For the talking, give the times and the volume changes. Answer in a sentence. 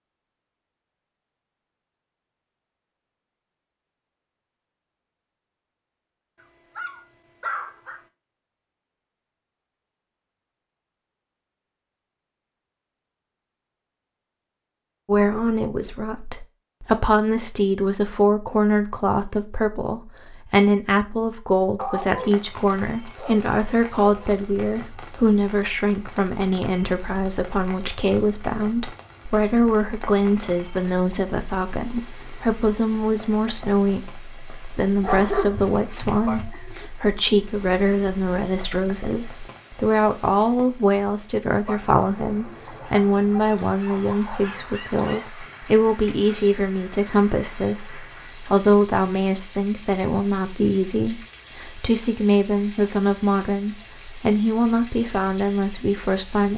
The talking can be heard from 15.1 to 56.5 s, at a steady volume.